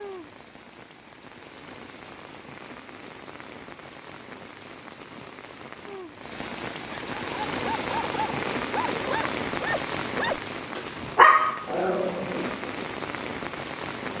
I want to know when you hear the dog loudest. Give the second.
11 s.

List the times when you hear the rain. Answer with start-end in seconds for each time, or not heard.
0.0-14.1.